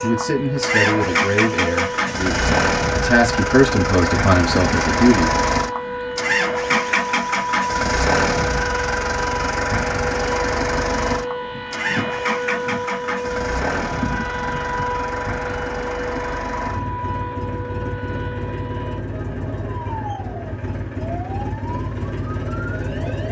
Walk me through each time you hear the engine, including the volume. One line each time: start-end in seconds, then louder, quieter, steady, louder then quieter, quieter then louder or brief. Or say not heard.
0.0-23.2 quieter.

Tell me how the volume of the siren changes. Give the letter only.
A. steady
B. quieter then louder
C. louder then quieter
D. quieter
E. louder
D.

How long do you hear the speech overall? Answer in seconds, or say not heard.
5 s.